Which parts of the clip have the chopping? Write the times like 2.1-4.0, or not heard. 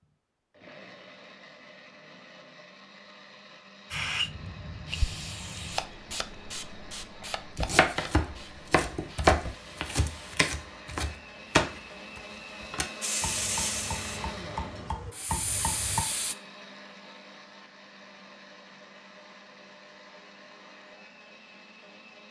7.5-16.1.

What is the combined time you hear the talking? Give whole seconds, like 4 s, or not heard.
not heard.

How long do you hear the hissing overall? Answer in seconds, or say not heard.
10 s.